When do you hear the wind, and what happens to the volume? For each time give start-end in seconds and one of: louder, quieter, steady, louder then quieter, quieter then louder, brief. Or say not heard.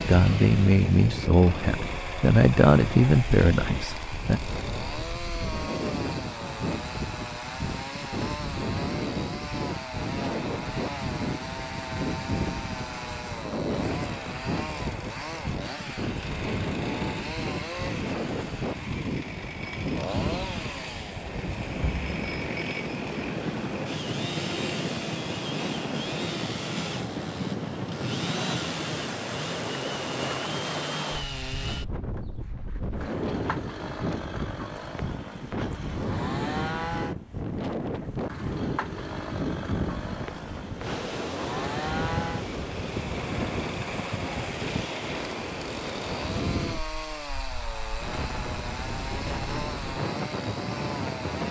0.0-51.4 steady.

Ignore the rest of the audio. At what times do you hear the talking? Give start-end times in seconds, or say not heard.
0.0-4.4.